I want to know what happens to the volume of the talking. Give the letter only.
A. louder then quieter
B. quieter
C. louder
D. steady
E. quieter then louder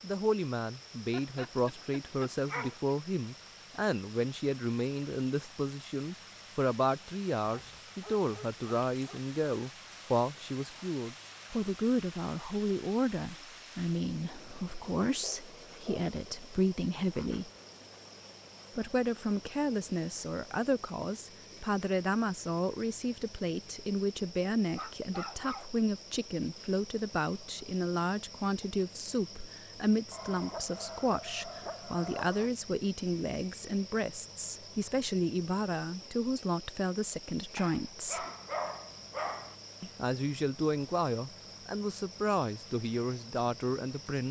D.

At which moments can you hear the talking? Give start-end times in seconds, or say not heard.
0.0-17.5, 18.8-38.2, 39.8-44.2.